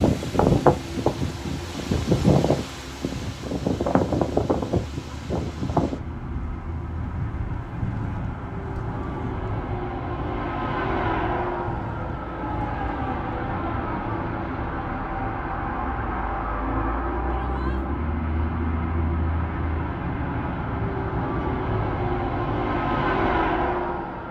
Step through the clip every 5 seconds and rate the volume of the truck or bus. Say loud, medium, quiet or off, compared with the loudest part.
quiet, medium, loud, loud, loud.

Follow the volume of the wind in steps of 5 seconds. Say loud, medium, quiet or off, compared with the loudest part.
loud, medium, quiet, off, off.